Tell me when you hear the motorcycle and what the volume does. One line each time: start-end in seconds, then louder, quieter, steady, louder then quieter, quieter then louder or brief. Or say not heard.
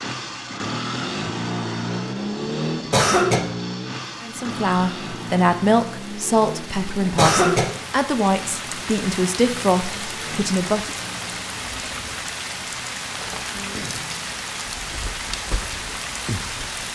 0.0-12.2 quieter.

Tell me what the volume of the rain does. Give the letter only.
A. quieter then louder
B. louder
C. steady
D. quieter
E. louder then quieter
B.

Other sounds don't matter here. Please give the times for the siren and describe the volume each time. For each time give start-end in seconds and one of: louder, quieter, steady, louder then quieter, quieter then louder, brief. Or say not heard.
not heard.